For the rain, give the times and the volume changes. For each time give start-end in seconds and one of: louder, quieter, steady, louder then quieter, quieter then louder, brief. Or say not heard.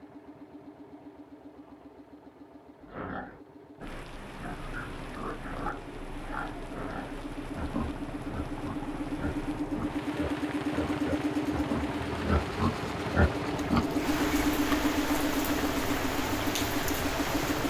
3.8-17.6 louder.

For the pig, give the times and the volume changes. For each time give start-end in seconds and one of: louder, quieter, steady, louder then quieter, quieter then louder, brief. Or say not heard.
2.8-13.8 louder.